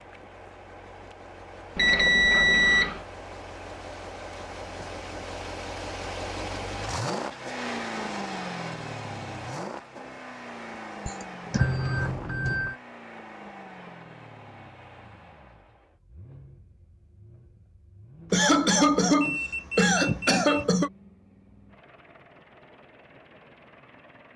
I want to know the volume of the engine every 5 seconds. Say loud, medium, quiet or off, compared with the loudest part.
medium, loud, medium, quiet, quiet.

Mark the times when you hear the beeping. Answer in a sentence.
You can hear the beeping from 1.8 to 3.0 s, from 11.5 to 12.8 s and from 19.2 to 20.6 s.